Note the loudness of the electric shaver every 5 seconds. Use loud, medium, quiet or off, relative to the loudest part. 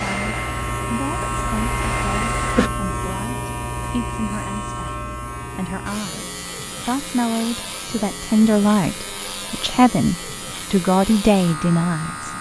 loud, medium, medium.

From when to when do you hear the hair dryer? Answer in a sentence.
The hair dryer can be heard from 0.0 to 2.7 s.